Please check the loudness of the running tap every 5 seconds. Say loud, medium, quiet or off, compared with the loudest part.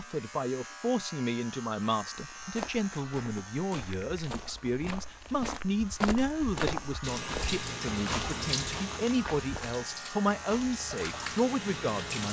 off, loud, loud.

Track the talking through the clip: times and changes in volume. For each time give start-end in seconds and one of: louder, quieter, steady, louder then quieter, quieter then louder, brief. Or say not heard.
0.0-12.2 steady.